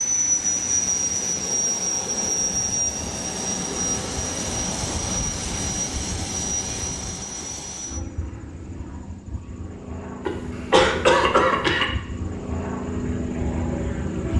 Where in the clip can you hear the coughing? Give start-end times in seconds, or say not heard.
10.2-11.8.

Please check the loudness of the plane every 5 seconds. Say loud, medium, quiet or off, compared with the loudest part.
loud, medium, medium.